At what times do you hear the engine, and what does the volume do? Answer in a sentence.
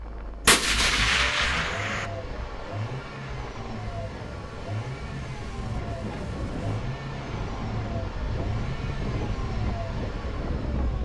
You can hear the engine from 0.0 to 10.9 s, at a steady volume.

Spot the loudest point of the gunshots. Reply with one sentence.
The volume of the gunshots peaks at 1 second.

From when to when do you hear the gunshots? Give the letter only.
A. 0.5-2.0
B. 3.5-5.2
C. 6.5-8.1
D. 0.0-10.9
A.